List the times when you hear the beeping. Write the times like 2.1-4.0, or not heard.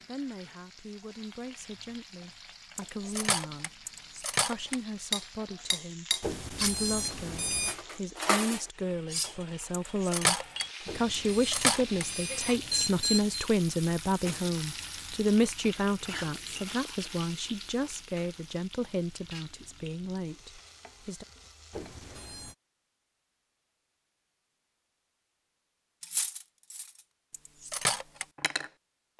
6.2-7.8, 10.8-13.4, 21.7-22.6.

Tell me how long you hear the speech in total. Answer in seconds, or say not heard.
21 s.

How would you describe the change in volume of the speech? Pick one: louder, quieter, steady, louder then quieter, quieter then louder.
louder then quieter.